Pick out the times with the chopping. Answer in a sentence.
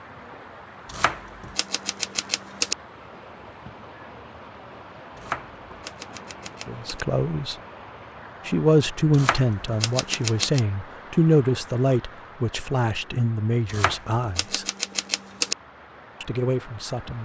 You can hear the chopping from 0.8 to 2.8 s, from 5.2 to 7.0 s, from 9.1 to 10.6 s and from 13.7 to 15.6 s.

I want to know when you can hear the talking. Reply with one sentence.
You can hear the talking from 6.7 to 7.5 s, from 8.4 to 14.7 s and from 16.2 to 17.1 s.